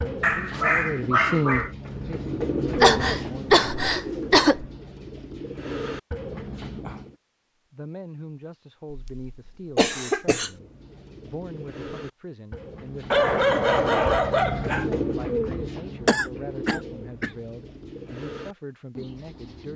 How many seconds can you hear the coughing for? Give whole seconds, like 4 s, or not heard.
5 s.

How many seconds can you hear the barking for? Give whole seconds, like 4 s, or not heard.
3 s.